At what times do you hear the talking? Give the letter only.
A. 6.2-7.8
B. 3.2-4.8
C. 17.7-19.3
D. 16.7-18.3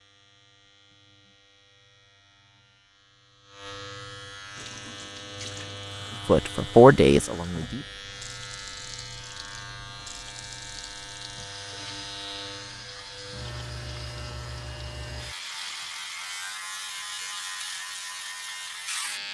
A.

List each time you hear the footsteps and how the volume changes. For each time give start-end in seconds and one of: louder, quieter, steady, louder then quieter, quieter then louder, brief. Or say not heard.
not heard.